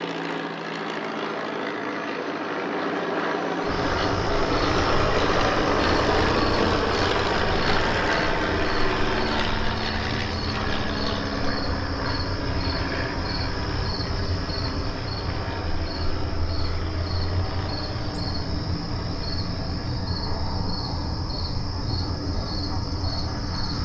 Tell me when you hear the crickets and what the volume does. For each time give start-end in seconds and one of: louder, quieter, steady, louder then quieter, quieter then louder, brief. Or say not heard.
3.6-23.7 steady.